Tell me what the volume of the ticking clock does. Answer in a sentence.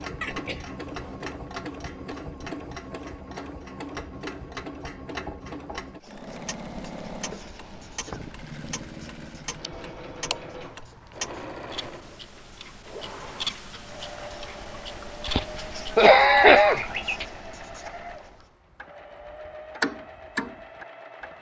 The volume of the ticking clock goes up.